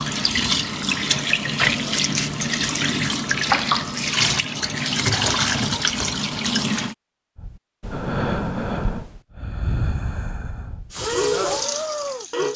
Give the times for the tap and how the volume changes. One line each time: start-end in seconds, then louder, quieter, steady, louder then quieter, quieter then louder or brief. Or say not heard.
0.0-7.0 steady
10.9-12.5 brief.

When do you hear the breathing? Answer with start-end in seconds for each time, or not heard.
7.3-12.5.